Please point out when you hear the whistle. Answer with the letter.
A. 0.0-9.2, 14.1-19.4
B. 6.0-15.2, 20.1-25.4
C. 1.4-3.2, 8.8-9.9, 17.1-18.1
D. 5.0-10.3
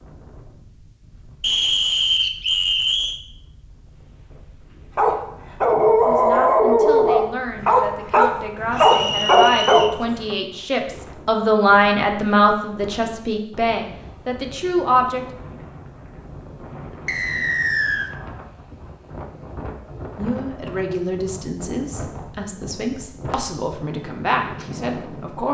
C.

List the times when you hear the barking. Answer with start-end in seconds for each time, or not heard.
5.0-10.3.